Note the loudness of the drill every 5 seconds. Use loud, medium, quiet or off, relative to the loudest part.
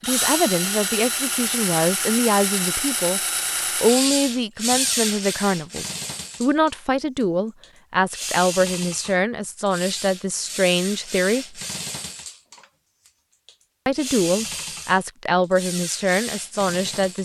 loud, medium, medium, medium.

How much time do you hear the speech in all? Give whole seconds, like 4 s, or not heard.
15 s.